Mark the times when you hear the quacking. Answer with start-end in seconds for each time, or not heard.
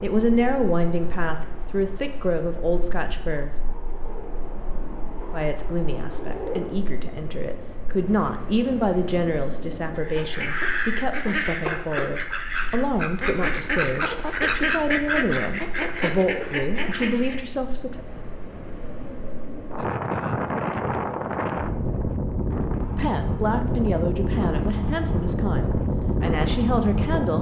9.9-17.4.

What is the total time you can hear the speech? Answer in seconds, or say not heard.
21 s.